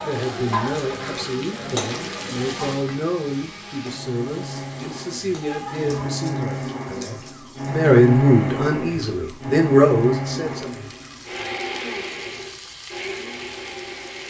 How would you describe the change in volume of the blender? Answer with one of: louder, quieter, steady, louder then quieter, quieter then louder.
louder then quieter.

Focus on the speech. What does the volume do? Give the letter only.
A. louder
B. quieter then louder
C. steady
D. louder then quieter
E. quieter
A.